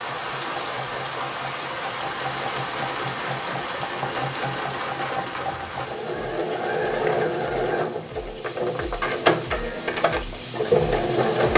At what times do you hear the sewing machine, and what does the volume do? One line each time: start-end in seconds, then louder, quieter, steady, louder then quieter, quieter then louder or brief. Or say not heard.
0.0-11.5 louder.